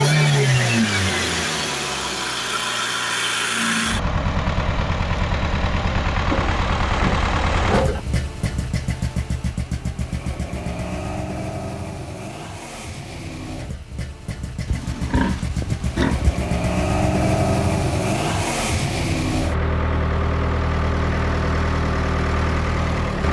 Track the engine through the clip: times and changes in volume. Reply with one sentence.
The engine can be heard from 0.0 to 23.2 s, getting quieter then louder.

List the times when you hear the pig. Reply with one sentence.
The pig can be heard from 6.3 to 8.1 s and from 14.7 to 16.4 s.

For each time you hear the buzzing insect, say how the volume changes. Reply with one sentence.
The buzzing insect can't be heard in this clip.